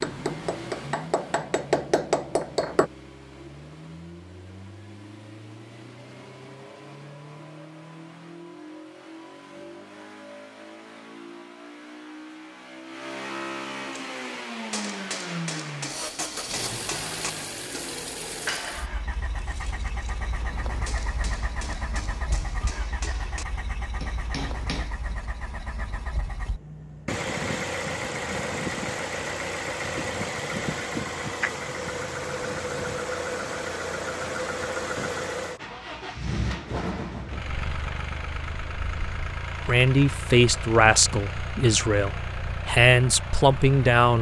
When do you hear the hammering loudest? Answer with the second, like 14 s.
2 s.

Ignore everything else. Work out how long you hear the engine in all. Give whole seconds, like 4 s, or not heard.
44 s.